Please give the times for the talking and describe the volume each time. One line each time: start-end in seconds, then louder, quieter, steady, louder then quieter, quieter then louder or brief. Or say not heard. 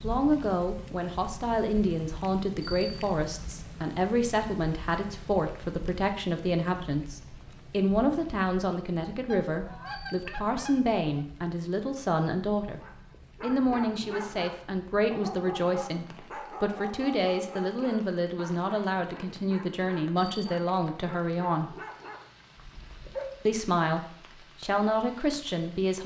0.0-12.8 steady
13.4-21.8 steady
23.4-26.0 brief.